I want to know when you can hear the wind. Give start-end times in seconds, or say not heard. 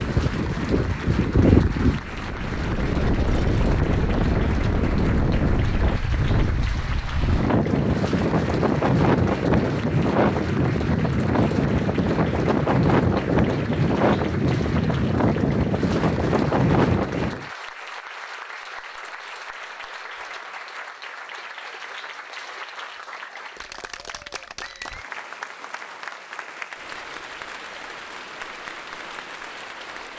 0.0-17.5.